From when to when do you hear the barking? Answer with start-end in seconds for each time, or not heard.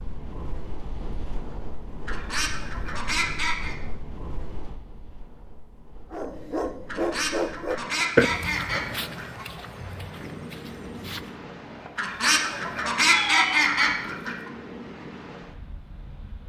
6.1-11.4.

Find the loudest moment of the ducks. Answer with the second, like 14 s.
13 s.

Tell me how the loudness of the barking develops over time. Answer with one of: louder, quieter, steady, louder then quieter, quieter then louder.
louder then quieter.